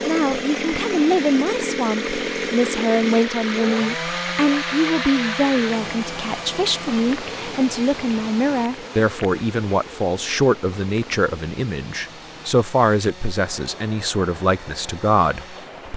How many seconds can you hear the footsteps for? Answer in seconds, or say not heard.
not heard.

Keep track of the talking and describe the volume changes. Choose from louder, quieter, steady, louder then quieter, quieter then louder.
steady.